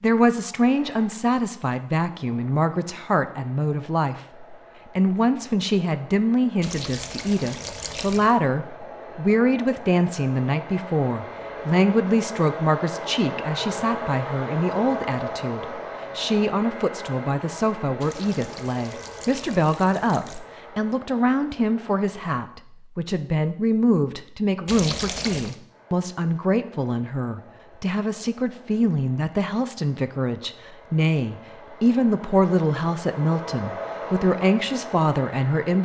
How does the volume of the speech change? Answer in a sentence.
The volume of the speech stays about the same.